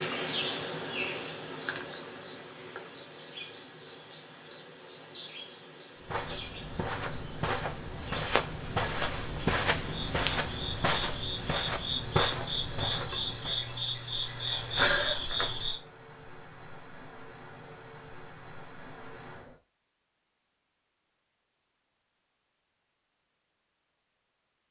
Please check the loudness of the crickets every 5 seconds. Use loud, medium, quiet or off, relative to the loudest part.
loud, medium, medium, medium, off.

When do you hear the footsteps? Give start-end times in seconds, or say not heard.
6.0-13.6.